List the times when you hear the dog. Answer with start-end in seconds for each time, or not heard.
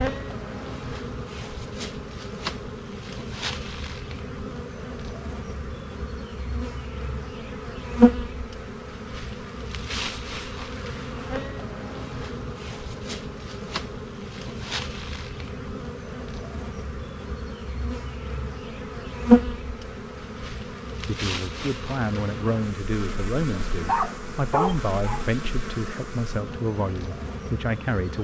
23.5-25.2.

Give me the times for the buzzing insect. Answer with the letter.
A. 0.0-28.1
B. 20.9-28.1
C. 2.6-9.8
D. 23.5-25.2
A.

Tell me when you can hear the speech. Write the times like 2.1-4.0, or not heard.
20.9-28.1.